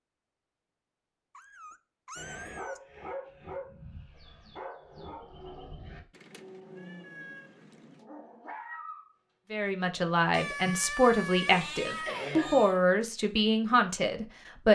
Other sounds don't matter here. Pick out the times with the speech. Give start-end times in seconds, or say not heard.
9.5-14.6.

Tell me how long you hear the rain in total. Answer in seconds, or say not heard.
not heard.